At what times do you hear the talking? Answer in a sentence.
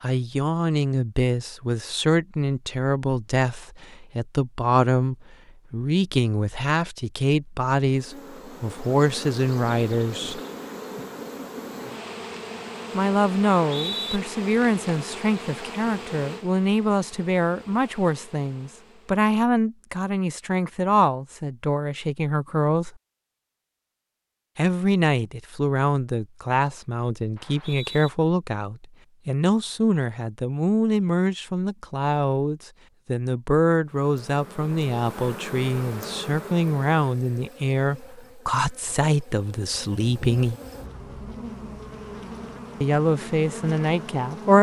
You can hear the talking from 0.0 to 10.4 s, from 12.9 to 22.9 s, from 24.6 to 40.5 s and from 42.8 to 44.5 s.